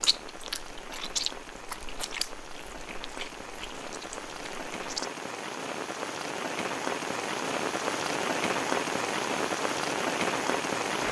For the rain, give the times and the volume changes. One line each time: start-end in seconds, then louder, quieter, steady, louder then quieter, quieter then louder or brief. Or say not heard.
0.0-11.0 louder.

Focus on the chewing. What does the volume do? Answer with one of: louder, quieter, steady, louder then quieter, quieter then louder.
quieter.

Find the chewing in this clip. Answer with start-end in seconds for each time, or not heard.
0.0-5.1.